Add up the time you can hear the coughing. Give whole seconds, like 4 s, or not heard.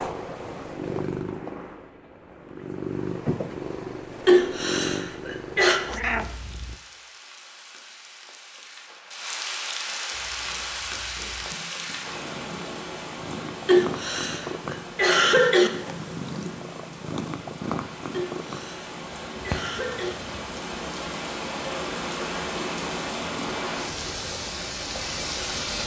6 s.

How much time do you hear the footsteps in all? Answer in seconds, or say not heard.
not heard.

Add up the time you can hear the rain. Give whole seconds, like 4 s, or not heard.
20 s.